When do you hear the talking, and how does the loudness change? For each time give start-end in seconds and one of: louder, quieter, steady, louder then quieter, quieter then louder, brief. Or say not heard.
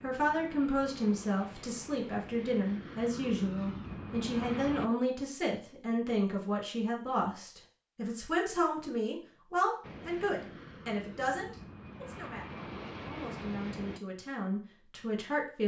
0.0-15.6 quieter.